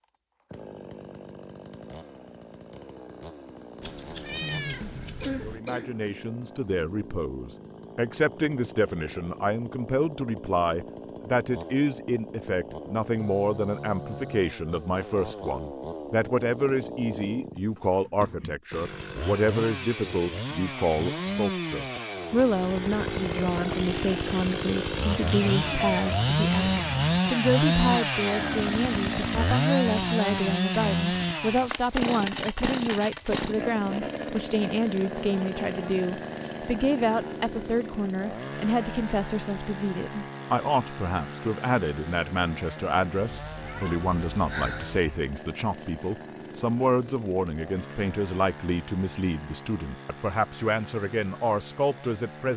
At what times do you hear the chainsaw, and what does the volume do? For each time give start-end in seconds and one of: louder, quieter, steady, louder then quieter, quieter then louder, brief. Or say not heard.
0.0-52.5 louder then quieter.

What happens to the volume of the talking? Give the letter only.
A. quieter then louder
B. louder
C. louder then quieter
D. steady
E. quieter
D.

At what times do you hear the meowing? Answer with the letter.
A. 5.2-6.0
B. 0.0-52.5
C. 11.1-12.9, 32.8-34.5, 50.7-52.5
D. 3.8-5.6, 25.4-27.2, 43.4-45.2
D.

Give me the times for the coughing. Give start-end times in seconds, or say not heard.
5.2-6.0.